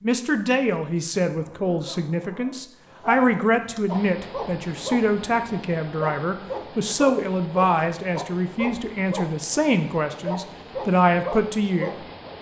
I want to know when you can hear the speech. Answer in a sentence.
You can hear the speech from 0.0 to 11.9 s.